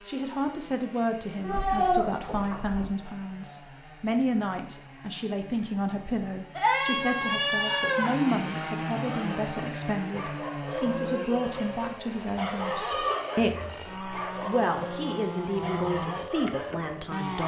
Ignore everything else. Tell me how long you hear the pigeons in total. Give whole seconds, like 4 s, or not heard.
not heard.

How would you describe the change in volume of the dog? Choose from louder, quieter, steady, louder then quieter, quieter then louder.
steady.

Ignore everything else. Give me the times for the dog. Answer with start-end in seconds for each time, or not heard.
9.2-17.4.